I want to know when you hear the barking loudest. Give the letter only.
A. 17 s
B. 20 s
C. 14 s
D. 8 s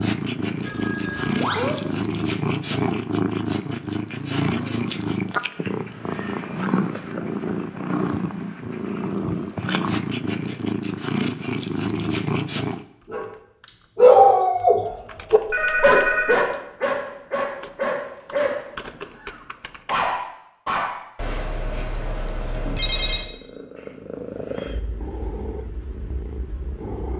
C.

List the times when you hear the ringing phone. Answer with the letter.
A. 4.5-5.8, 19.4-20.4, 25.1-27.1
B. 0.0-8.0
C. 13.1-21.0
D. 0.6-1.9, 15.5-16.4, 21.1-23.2
D.